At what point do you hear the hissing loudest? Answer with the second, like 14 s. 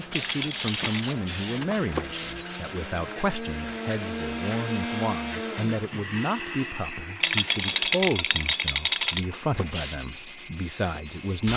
1 s.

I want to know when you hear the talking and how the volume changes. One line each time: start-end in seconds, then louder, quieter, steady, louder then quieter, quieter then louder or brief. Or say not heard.
0.0-11.5 steady.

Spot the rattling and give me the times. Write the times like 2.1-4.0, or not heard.
0.1-0.9, 7.2-9.2.